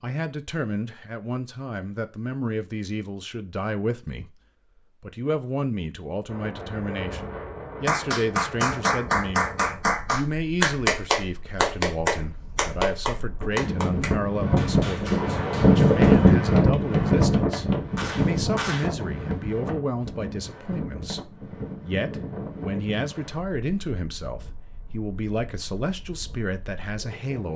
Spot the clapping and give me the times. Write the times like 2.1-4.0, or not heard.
7.8-18.9.